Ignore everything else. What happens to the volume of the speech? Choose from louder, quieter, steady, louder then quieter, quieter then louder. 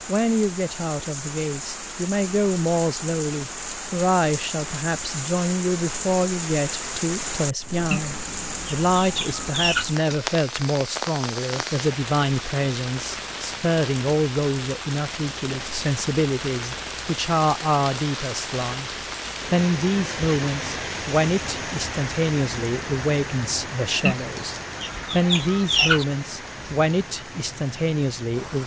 steady.